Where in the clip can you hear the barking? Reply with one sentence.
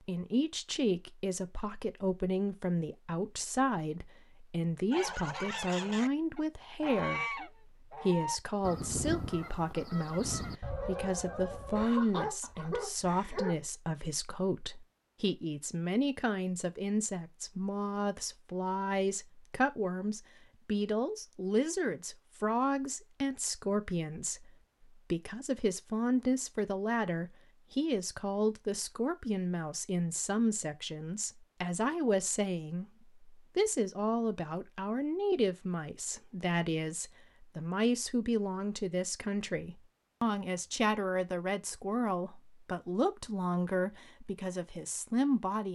You can hear the barking from 11.8 to 13.6 s.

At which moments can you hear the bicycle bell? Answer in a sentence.
The bicycle bell can't be heard in this clip.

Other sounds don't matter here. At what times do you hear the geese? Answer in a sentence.
The geese can be heard from 4.9 to 11.8 s.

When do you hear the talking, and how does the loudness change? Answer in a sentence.
You can hear the talking from 0.1 to 45.6 s, at a steady volume.